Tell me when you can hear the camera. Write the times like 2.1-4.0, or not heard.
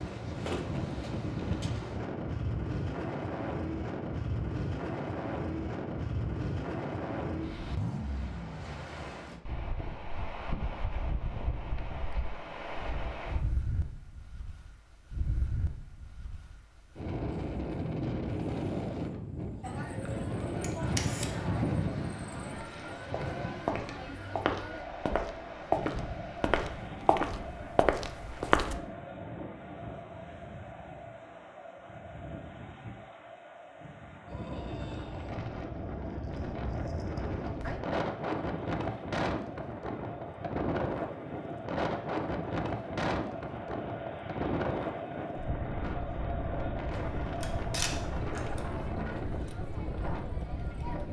20.4-21.3, 47.0-48.6.